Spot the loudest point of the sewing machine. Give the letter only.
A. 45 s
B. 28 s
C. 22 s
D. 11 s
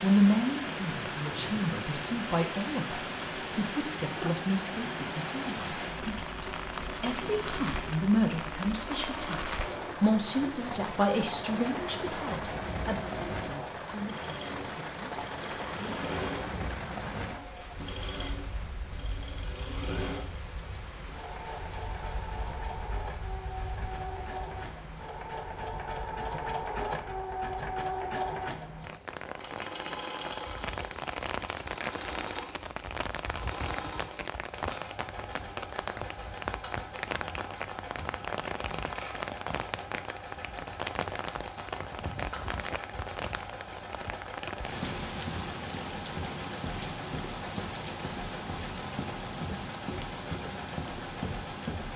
B.